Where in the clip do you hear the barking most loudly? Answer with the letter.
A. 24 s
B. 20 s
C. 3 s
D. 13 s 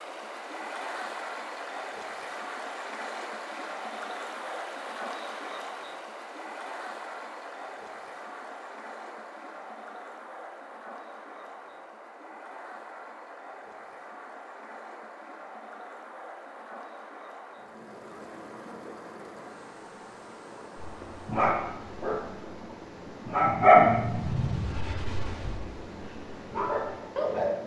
A.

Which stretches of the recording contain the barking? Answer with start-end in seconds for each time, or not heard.
20.8-27.5.